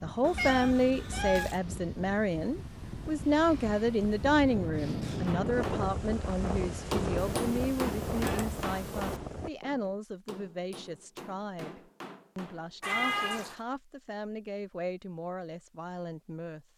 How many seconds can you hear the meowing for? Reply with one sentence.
You can hear the meowing for 4 seconds altogether.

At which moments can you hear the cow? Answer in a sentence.
The cow can't be heard in this clip.